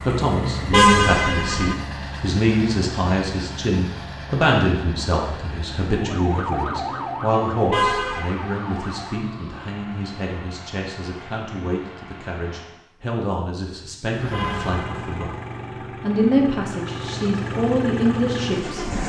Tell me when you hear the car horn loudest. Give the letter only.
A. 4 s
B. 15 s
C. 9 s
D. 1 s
D.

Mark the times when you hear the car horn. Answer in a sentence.
The car horn can be heard from 0.7 to 1.8 s, from 7.7 to 8.3 s and from 14.3 to 15.3 s.